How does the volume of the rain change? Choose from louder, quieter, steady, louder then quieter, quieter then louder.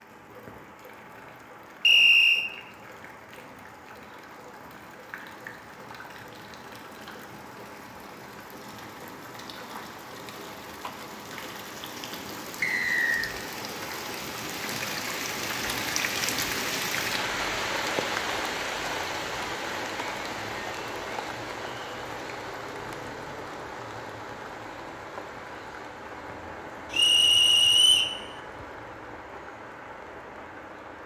louder then quieter.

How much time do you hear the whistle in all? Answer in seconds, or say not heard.
3 s.